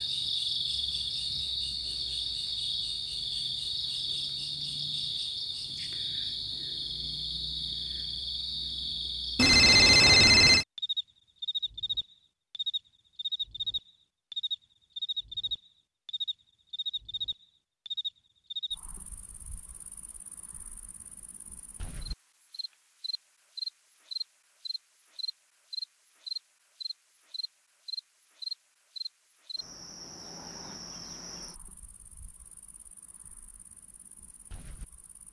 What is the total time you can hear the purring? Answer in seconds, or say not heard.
not heard.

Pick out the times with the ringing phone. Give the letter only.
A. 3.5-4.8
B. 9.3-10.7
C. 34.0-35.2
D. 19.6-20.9
B.